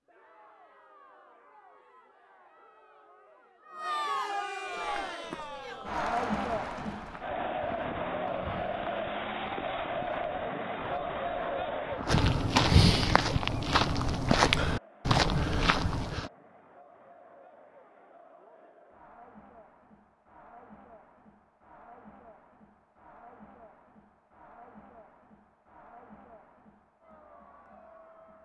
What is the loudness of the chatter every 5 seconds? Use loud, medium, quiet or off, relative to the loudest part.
medium, loud, loud, quiet, quiet, quiet.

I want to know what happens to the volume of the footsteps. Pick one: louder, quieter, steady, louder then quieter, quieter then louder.
louder.